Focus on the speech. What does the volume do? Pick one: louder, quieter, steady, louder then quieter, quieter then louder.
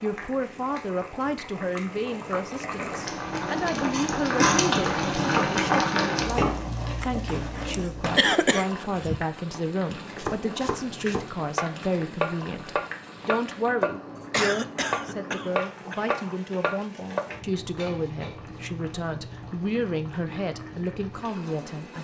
steady.